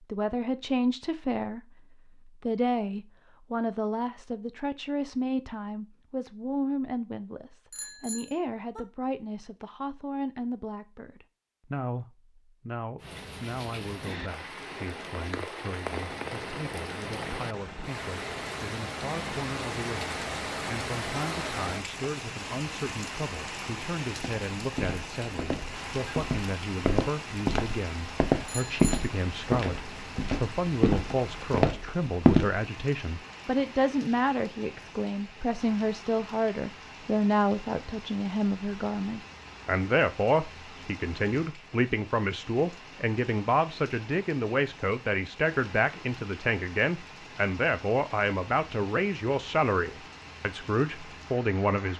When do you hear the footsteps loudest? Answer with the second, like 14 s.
32 s.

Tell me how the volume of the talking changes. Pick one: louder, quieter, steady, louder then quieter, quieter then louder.
quieter then louder.